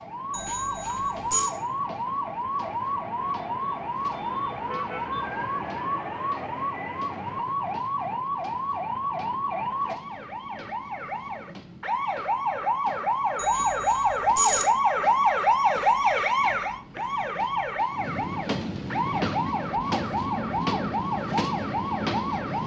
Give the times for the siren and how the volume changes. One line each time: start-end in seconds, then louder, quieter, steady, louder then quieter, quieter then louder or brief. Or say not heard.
0.0-22.6 louder then quieter.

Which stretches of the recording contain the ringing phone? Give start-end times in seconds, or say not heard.
0.3-1.5, 13.3-14.7.